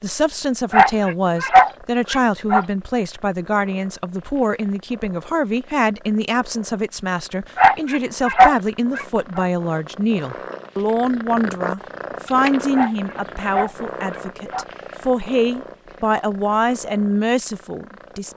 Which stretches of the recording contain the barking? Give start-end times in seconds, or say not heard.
0.7-2.6, 7.5-9.4, 12.7-14.7.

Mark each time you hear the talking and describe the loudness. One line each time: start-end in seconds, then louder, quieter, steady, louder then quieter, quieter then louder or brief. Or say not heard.
0.0-18.3 steady.